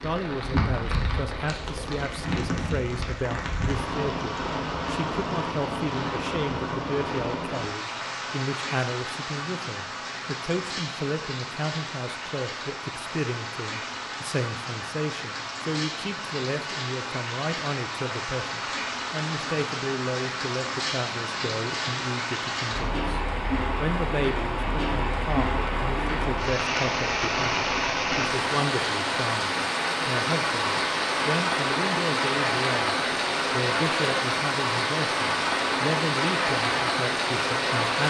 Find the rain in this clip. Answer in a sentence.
The rain can be heard from 0.0 to 38.0 s.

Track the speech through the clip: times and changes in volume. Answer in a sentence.
The speech can be heard from 0.0 to 38.0 s, at a steady volume.